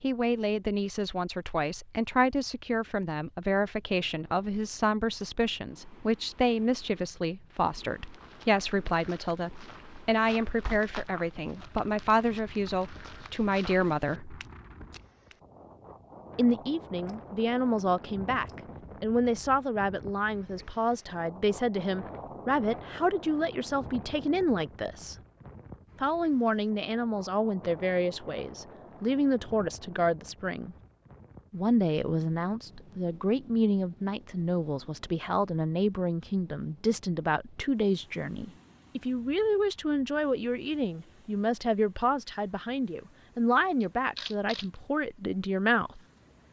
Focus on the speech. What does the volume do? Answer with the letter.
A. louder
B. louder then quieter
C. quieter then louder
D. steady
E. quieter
D.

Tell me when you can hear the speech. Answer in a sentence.
You can hear the speech from 0.0 to 14.4 s, from 16.4 to 25.1 s, from 26.0 to 30.8 s and from 31.5 to 46.0 s.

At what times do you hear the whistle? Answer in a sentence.
You can't hear the whistle here.